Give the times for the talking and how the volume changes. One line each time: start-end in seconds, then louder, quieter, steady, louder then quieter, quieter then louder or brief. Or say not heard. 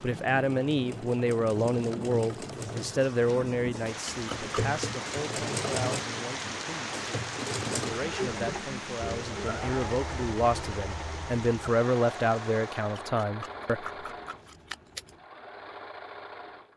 0.0-13.8 quieter then louder.